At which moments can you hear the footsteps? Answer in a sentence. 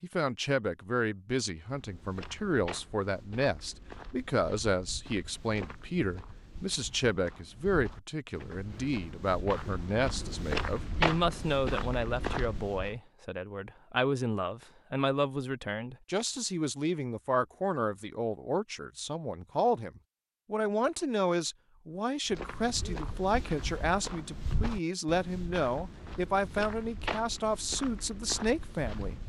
The footsteps can be heard from 1.6 to 13.0 s and from 22.3 to 29.2 s.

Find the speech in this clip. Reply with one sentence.
The speech can be heard from 0.0 to 29.2 s.